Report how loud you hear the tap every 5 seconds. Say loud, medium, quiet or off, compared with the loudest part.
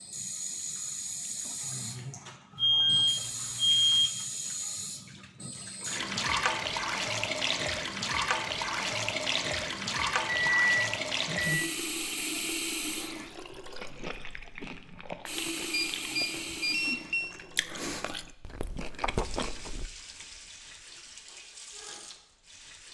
medium, loud, loud, medium, quiet.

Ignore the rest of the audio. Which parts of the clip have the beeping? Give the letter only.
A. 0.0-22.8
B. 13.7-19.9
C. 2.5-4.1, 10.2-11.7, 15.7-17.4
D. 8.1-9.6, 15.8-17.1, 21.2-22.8
C.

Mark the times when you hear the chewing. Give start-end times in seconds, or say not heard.
13.7-19.9.